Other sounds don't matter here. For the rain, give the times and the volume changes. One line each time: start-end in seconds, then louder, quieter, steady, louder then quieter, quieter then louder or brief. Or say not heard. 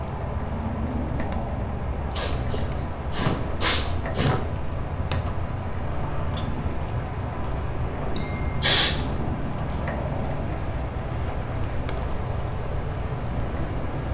0.0-14.0 steady.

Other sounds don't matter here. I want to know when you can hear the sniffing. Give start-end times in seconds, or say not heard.
2.1-4.5, 8.2-8.9.